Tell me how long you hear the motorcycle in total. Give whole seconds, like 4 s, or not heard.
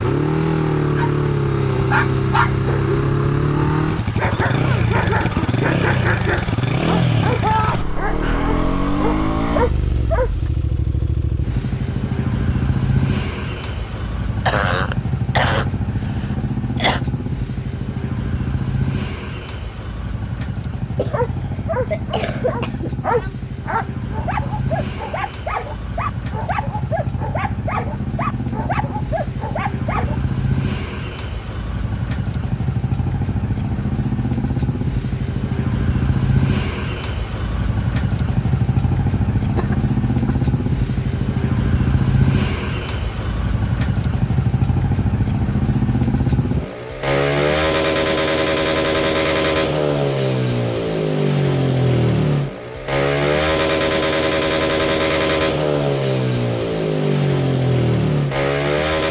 59 s.